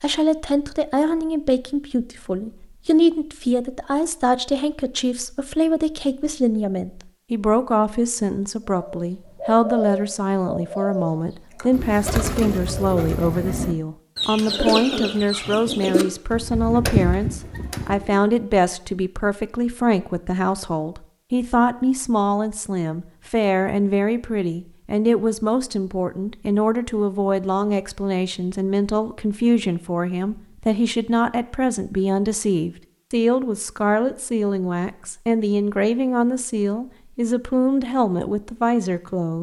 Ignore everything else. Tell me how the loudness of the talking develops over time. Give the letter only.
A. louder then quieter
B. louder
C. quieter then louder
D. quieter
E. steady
E.